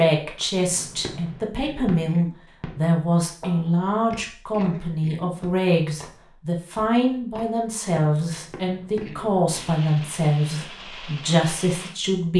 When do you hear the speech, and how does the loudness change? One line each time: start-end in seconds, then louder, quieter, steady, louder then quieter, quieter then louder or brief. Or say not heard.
0.0-12.3 steady.